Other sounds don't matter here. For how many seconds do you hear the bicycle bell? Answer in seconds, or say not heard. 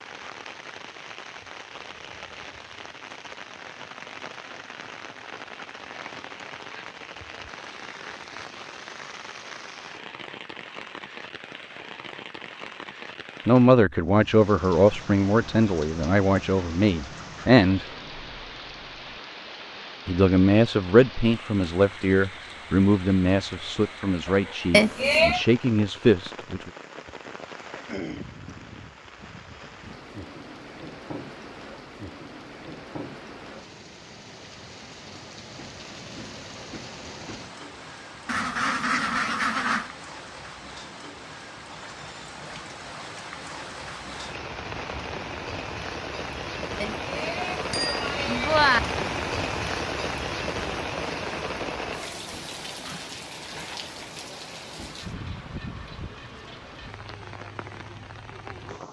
3 s.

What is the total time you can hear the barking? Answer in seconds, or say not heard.
not heard.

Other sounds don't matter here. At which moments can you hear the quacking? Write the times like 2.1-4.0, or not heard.
38.2-39.9.